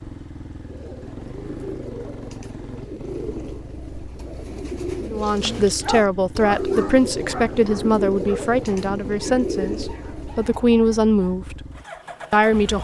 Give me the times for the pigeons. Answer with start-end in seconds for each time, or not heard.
0.6-10.7.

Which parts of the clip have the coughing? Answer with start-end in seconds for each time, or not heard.
not heard.